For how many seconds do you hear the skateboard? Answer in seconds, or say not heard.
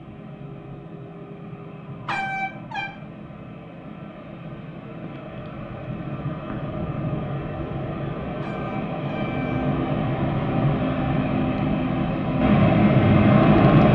not heard.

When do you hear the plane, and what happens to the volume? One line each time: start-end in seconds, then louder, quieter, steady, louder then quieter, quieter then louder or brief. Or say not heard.
0.0-13.9 louder.